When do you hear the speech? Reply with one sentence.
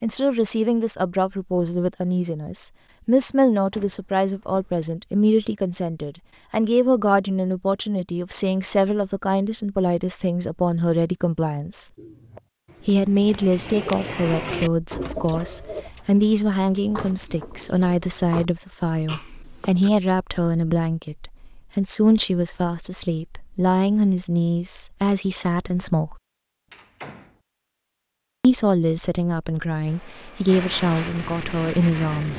The speech can be heard from 0.0 to 11.9 s, from 12.8 to 26.2 s and from 28.4 to 32.3 s.